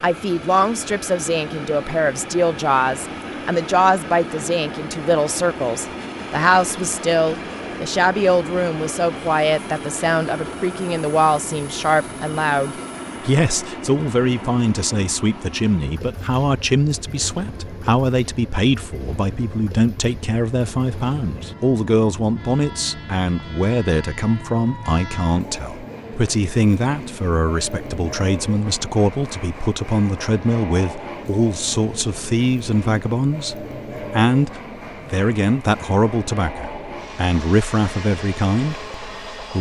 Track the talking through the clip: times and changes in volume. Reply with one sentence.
You can hear the talking from 0.0 to 39.5 s, at a steady volume.